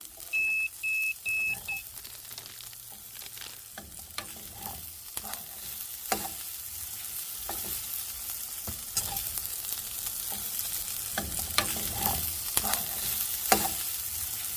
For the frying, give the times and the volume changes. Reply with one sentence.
The frying can be heard from 0.0 to 14.5 s, getting louder.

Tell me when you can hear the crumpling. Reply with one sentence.
The crumpling can be heard from 1.9 to 3.7 s.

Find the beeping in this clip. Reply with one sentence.
You can hear the beeping from 0.3 to 1.9 s.